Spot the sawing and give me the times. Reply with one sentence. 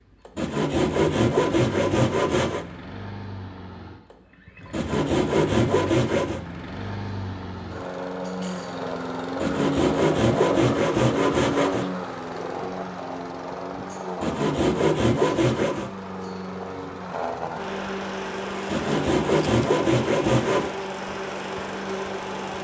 You can hear the sawing from 0.3 to 2.6 s, from 4.7 to 6.4 s, from 9.4 to 11.9 s, from 14.2 to 15.9 s and from 18.7 to 20.7 s.